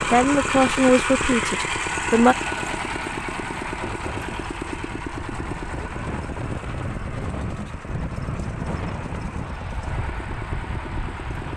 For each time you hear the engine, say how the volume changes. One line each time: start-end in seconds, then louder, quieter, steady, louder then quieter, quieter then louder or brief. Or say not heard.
0.0-11.5 quieter.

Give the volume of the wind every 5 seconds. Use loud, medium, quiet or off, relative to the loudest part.
medium, loud, loud.